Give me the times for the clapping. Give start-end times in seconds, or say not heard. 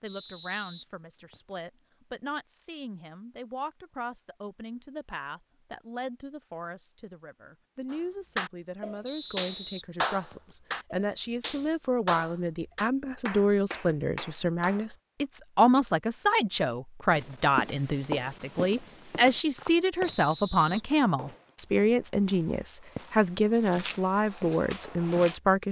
7.9-14.9.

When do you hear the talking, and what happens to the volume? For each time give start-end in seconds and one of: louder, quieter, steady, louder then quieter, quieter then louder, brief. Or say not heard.
0.0-25.6 louder.